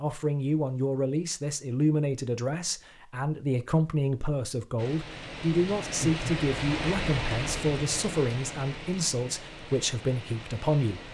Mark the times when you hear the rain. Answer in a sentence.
The rain can be heard from 4.8 to 11.0 s.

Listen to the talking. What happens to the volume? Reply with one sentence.
The volume of the talking stays about the same.